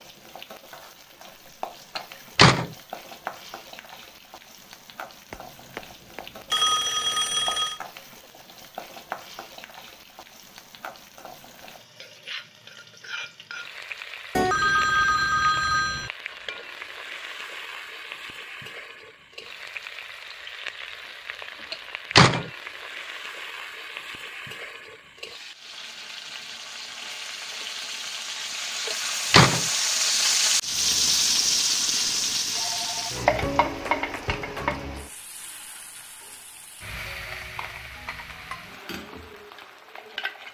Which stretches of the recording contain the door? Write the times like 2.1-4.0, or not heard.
1.9-2.7, 21.7-22.4, 28.9-29.6.